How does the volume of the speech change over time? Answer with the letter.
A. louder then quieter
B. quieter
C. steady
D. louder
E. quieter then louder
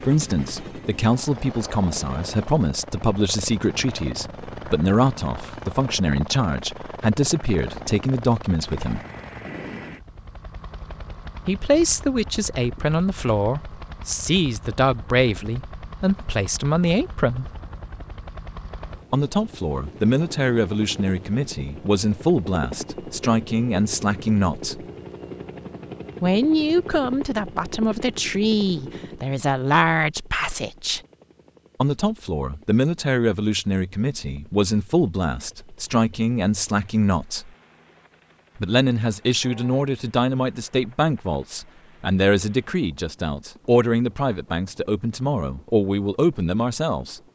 C.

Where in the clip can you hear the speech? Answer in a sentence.
You can hear the speech from 0.1 to 9.1 s, from 11.4 to 17.5 s, from 19.1 to 24.8 s, from 26.2 to 31.0 s, from 31.8 to 37.5 s and from 38.5 to 47.2 s.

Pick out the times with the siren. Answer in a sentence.
The siren can't be heard in this clip.